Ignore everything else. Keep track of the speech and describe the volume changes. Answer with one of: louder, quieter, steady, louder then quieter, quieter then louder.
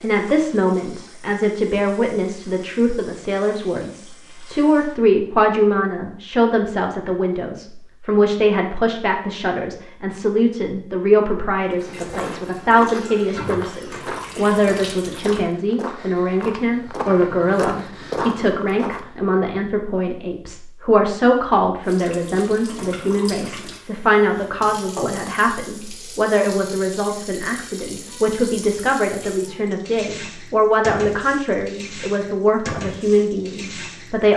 steady.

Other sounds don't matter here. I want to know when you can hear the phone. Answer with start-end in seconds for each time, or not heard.
not heard.